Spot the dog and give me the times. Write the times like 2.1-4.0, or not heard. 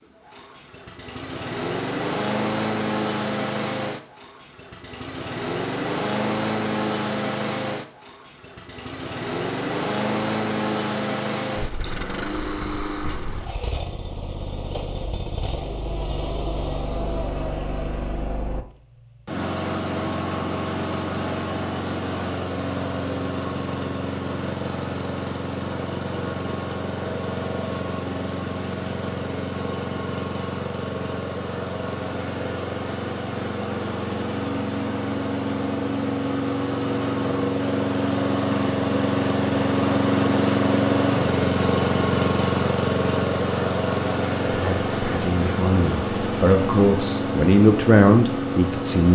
not heard.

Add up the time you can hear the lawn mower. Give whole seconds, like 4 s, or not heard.
49 s.